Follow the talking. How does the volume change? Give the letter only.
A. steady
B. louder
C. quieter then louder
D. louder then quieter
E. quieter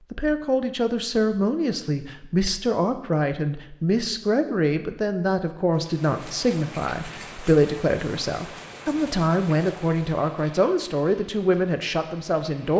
A.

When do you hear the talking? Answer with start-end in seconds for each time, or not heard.
0.1-12.7.